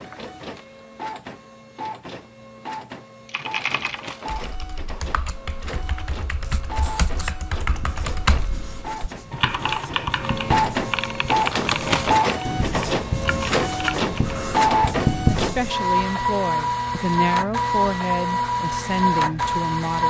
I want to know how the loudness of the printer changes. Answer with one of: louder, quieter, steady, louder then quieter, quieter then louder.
louder.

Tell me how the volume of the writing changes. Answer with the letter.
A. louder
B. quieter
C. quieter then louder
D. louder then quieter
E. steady
A.